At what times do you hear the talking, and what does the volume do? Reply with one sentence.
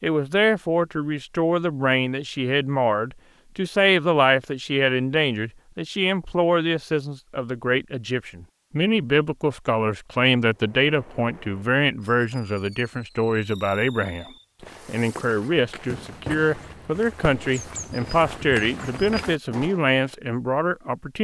You can hear the talking from 0.0 to 21.2 s, at a steady volume.